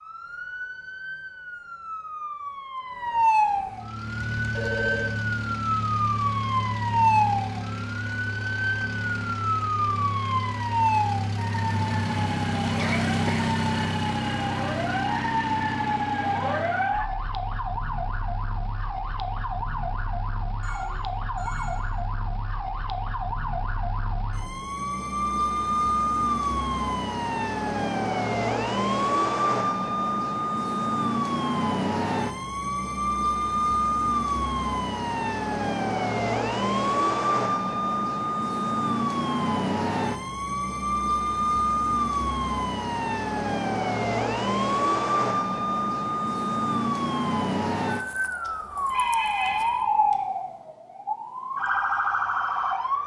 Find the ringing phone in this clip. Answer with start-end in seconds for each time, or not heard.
4.4-5.2, 20.6-21.9, 48.5-50.1.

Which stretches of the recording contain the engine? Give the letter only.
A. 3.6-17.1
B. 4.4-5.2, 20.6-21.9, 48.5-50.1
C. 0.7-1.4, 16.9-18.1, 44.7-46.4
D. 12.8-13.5
A.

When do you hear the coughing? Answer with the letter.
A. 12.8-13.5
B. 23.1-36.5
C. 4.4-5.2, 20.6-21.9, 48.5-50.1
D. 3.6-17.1
A.